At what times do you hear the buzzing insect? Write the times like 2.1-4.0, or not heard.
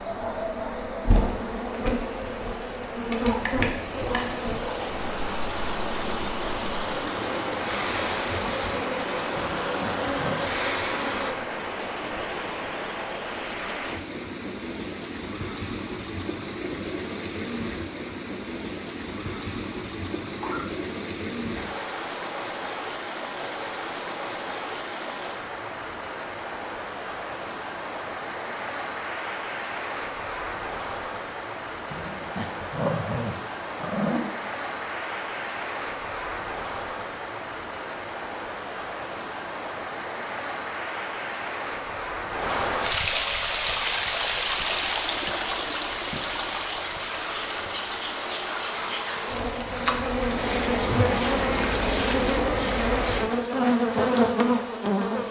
0.0-11.3, 43.4-55.2.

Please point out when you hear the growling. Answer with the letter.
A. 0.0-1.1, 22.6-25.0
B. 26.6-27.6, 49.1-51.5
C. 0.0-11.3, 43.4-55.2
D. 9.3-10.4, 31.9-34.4
D.